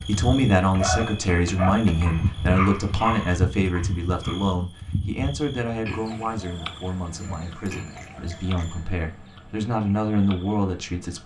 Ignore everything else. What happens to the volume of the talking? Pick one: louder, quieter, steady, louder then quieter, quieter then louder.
quieter then louder.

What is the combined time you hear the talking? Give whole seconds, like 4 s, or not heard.
11 s.